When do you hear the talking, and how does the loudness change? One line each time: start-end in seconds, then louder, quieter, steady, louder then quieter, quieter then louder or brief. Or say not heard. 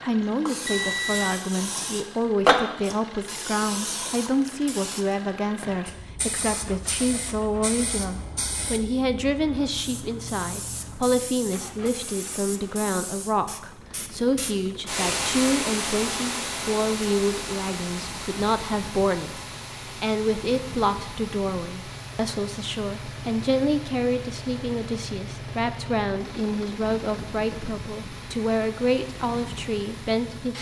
0.0-30.5 steady.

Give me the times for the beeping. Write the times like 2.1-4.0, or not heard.
0.7-1.4.